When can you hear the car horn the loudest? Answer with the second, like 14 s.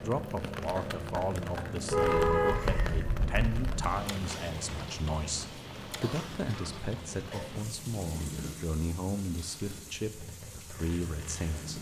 2 s.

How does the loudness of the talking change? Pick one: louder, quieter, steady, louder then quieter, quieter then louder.
steady.